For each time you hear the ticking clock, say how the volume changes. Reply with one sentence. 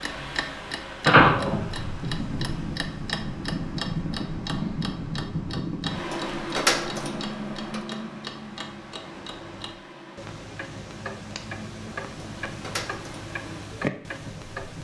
You can hear the ticking clock from 0.0 to 14.7 s, getting quieter then louder.